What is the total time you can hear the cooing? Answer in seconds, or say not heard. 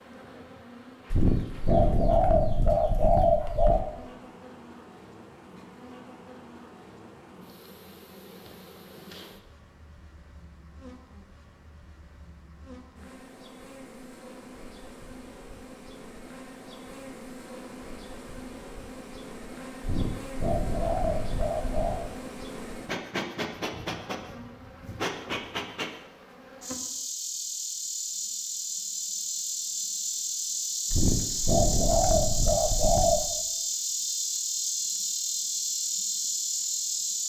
7 s.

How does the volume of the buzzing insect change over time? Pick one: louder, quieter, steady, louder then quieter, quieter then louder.
louder.